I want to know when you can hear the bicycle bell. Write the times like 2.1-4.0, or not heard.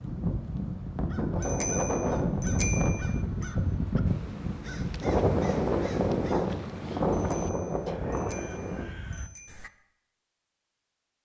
1.4-3.5, 7.1-9.7.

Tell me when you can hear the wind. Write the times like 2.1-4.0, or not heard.
0.0-8.9.